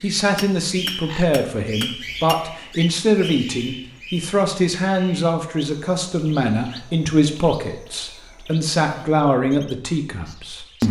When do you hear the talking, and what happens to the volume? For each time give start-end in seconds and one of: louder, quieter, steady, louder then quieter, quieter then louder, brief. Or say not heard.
0.0-10.8 steady.